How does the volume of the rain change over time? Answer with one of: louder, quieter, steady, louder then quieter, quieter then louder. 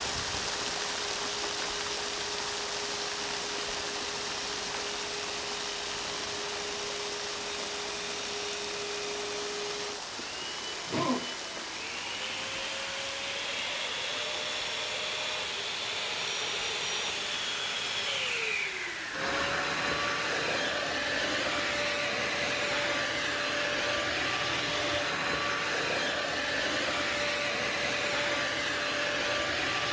quieter.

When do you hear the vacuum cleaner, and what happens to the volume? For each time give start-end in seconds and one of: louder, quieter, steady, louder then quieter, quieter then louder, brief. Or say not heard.
0.0-29.8 louder.